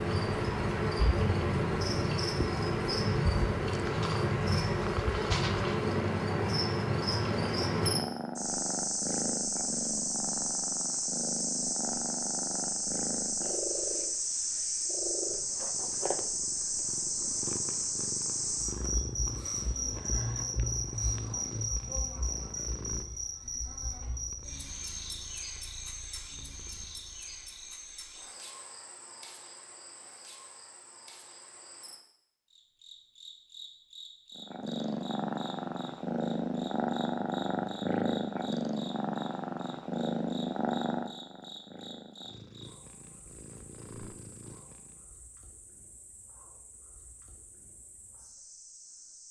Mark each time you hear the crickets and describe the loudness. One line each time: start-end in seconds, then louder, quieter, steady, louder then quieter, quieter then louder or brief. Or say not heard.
0.0-49.2 quieter.